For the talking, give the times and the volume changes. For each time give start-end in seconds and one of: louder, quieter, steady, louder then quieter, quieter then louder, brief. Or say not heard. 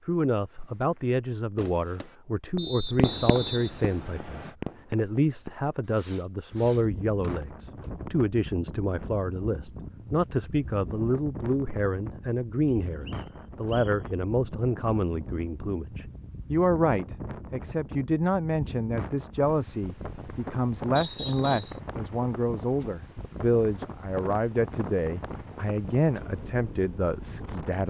0.1-27.8 steady.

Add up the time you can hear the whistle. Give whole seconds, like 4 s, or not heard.
4 s.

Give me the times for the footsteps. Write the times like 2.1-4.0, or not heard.
not heard.